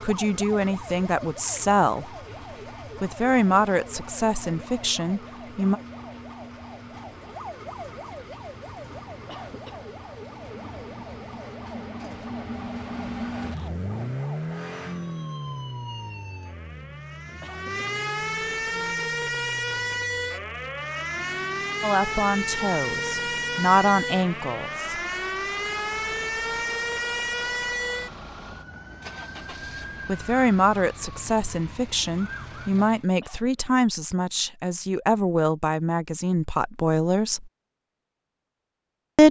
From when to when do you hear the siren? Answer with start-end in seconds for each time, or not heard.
0.0-32.7.